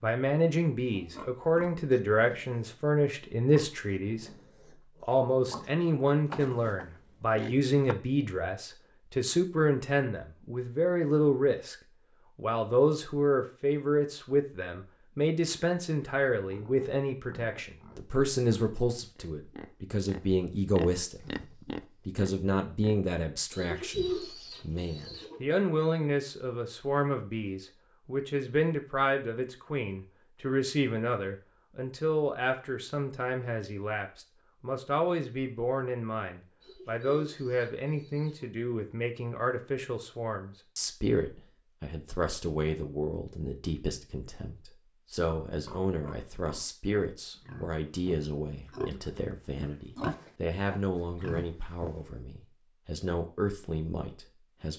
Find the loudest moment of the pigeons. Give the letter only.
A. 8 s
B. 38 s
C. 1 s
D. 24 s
D.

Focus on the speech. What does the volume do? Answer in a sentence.
The loudness of the speech goes down.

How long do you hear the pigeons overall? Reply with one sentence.
The pigeons can be heard for 4 seconds in total.